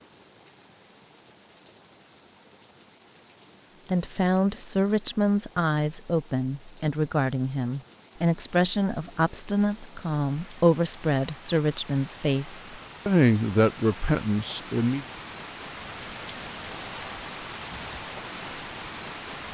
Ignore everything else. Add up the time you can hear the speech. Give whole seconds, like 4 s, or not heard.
11 s.